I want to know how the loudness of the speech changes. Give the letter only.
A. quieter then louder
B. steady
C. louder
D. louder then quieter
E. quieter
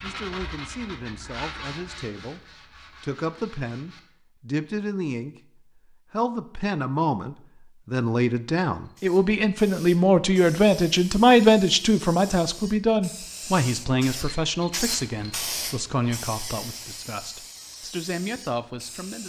D.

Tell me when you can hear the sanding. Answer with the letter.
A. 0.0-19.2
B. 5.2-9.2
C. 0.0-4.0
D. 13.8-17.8
C.